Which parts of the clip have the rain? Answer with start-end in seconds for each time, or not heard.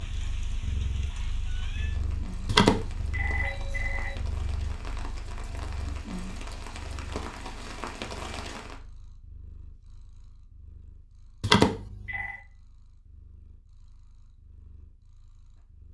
0.0-8.8.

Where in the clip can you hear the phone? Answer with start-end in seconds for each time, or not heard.
2.5-4.2, 11.4-12.4.